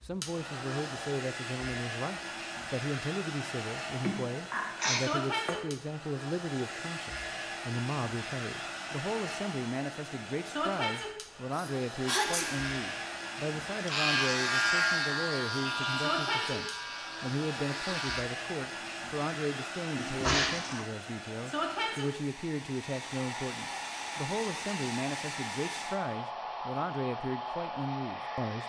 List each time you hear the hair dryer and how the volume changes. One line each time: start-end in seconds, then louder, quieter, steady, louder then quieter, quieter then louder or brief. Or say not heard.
0.0-28.6 steady.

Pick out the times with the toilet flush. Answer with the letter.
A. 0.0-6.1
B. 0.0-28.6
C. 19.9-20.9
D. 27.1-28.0
C.